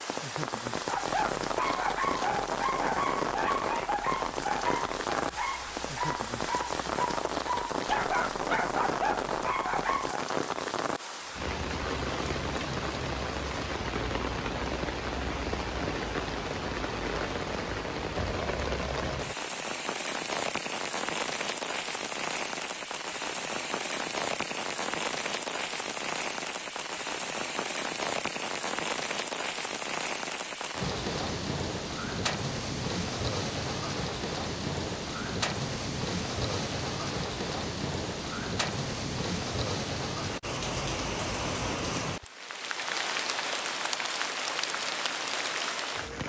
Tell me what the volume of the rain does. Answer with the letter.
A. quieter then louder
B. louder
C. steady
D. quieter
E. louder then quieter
C.